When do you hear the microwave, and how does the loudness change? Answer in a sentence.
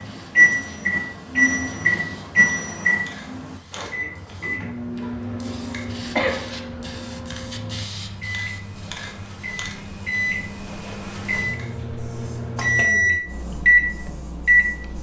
The microwave can be heard from 0.0 to 14.9 s, getting quieter then louder.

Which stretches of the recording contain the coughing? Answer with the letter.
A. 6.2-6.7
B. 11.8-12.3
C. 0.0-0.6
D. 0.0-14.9
A.